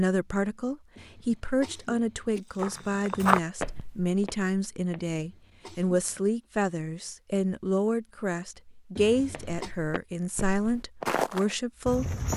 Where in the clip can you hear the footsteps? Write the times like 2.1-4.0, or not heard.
2.4-5.2, 9.3-12.3.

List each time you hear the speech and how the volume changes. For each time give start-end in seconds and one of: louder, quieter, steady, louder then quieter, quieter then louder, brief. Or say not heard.
0.0-12.3 steady.